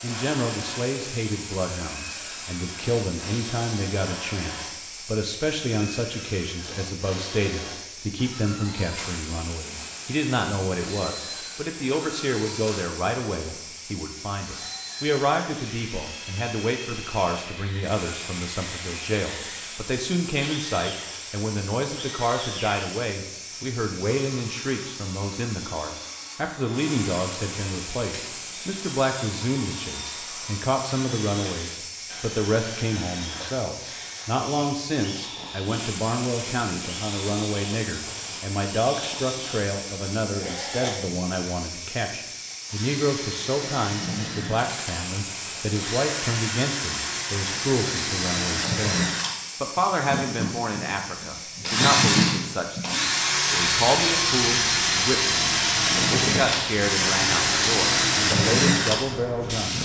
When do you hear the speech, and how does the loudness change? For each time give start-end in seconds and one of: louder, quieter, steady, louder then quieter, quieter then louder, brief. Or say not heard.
0.0-59.8 steady.